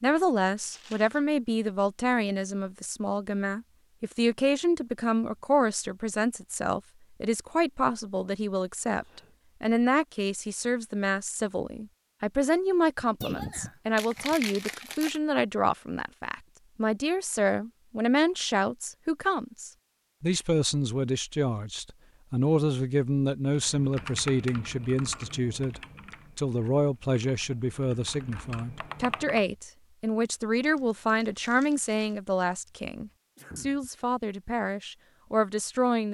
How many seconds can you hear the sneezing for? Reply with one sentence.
You can hear the sneezing for 2 seconds altogether.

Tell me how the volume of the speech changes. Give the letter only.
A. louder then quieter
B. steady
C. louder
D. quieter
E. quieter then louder
B.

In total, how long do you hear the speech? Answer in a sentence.
You can hear the speech for 36 seconds altogether.